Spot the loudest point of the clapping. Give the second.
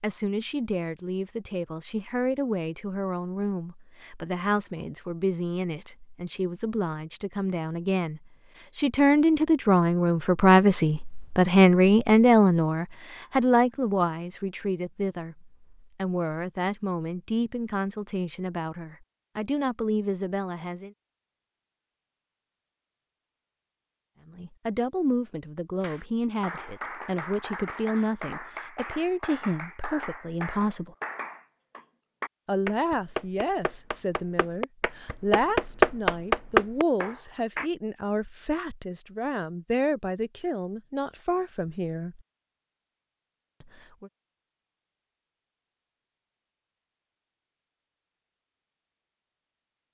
36 s.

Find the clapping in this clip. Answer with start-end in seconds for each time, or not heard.
25.8-37.7.